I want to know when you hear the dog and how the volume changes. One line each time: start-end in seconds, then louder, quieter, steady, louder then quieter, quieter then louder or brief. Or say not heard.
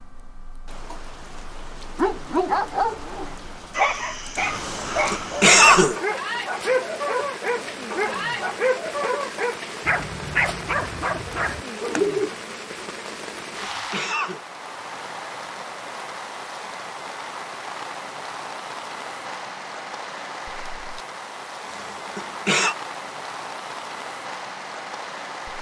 1.9-12.3 steady.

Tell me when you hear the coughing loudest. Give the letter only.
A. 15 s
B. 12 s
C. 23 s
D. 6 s
D.